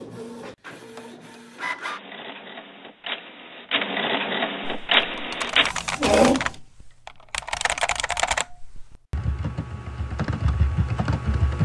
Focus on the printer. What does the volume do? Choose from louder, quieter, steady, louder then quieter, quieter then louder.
louder.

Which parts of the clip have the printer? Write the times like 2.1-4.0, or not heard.
0.0-6.5.